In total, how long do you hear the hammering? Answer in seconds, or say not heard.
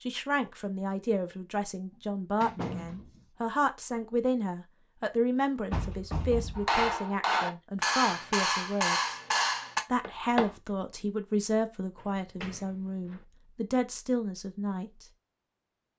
4 s.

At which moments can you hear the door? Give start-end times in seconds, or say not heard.
2.4-3.1, 5.7-7.0, 12.0-13.2.